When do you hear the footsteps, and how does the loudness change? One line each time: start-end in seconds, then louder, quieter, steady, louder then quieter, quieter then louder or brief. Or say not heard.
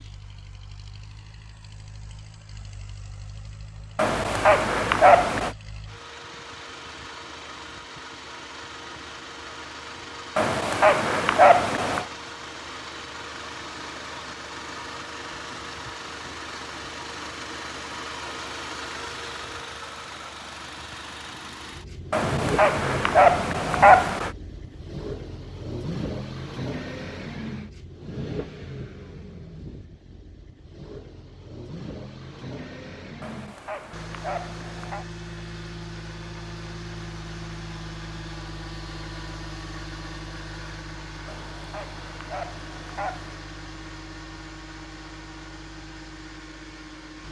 not heard.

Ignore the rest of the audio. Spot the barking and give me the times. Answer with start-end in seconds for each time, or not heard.
4.0-5.5, 10.3-12.1, 22.1-24.3, 33.2-35.0, 41.2-43.4.